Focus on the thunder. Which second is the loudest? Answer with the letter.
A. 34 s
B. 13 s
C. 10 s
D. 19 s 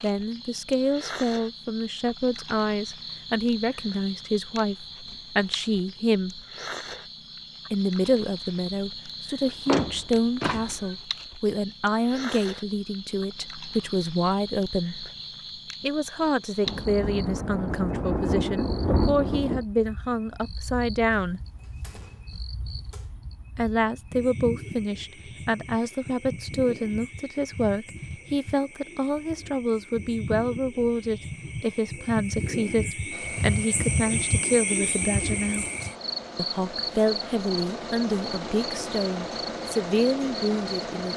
D.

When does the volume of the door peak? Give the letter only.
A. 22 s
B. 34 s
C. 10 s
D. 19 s
C.